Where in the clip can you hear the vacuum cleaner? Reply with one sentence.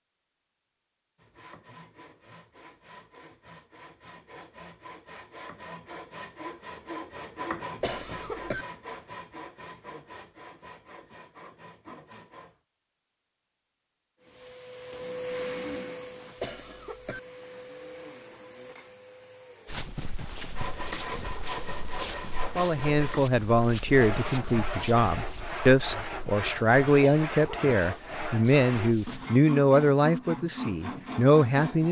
The vacuum cleaner can be heard from 14.2 to 19.9 s.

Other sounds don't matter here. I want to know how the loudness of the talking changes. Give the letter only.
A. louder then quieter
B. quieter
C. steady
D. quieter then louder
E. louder
C.